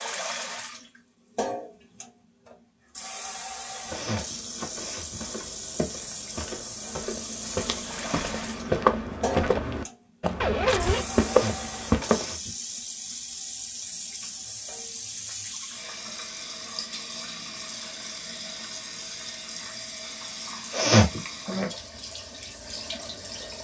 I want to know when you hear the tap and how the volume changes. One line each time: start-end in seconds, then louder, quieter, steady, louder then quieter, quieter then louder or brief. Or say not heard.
0.0-23.5 steady.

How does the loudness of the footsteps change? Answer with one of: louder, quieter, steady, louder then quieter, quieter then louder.
louder.